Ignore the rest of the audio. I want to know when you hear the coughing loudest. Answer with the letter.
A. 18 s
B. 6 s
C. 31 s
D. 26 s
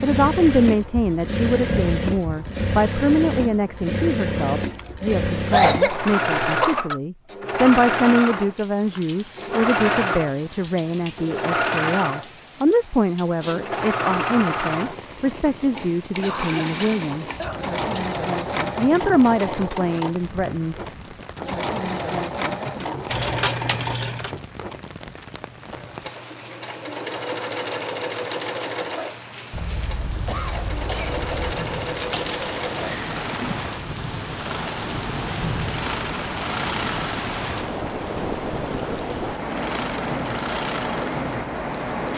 B.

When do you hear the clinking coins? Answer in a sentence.
The clinking coins can be heard from 4.7 to 5.1 s, from 23.1 to 24.4 s and from 31.9 to 33.6 s.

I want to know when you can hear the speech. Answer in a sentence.
The speech can be heard from 0.0 to 17.2 s and from 18.8 to 20.8 s.